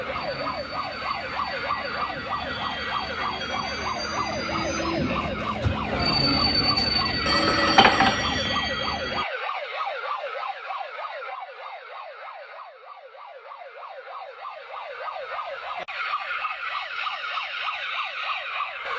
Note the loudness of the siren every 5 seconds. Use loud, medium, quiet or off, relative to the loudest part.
loud, loud, medium, loud.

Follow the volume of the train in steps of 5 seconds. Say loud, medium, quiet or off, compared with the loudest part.
medium, loud, off, off.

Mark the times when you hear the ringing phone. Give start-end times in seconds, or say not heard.
7.2-8.6.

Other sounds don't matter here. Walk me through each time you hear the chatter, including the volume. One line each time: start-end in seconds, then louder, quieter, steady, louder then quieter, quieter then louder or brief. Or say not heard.
not heard.